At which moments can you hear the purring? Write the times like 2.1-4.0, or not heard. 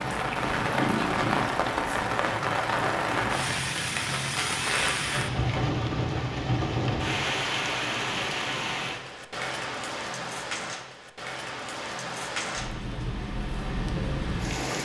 0.0-3.4.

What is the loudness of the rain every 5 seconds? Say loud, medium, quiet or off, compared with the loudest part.
loud, loud, medium.